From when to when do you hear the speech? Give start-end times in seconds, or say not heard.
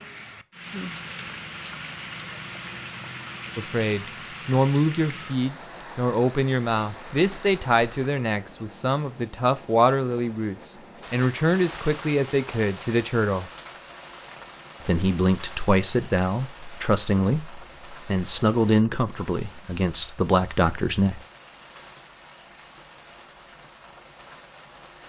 3.5-13.5, 14.8-21.2.